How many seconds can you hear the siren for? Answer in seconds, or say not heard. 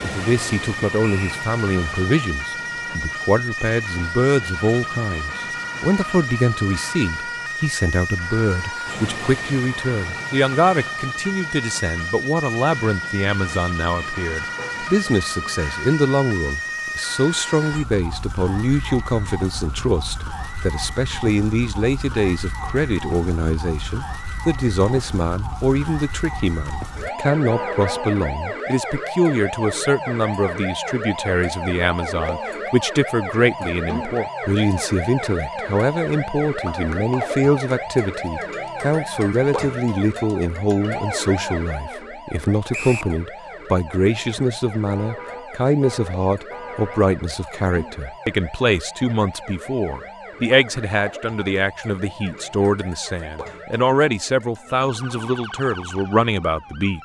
57 s.